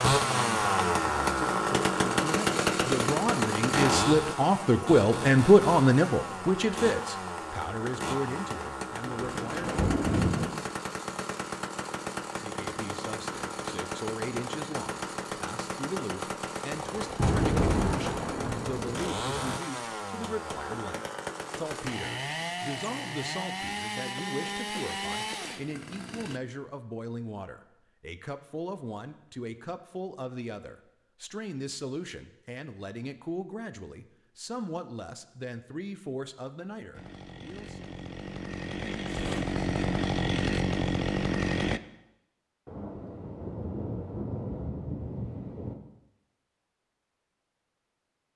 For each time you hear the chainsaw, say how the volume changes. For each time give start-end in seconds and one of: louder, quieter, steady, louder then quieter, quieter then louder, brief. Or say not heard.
0.0-26.4 quieter
36.9-41.8 louder.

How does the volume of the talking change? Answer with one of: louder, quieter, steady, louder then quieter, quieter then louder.
quieter.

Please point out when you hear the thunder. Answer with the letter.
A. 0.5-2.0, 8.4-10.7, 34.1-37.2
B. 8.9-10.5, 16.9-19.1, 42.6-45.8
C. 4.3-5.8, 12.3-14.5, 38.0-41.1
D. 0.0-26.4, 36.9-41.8
B.